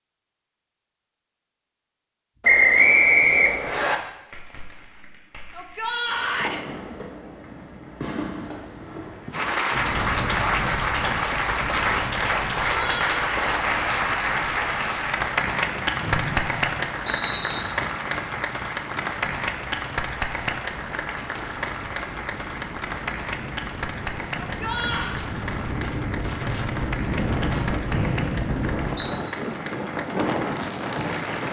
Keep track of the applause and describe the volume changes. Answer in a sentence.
The loudness of the applause goes down.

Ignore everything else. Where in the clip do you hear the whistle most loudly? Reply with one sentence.
The volume of the whistle peaks at 3 seconds.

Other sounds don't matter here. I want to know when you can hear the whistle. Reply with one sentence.
You can hear the whistle from 2.4 to 4.0 s, from 16.0 to 17.6 s and from 27.9 to 29.1 s.